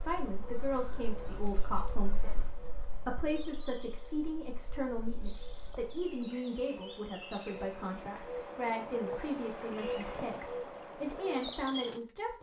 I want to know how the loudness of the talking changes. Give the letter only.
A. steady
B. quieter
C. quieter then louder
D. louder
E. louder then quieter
A.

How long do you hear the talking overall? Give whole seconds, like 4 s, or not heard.
12 s.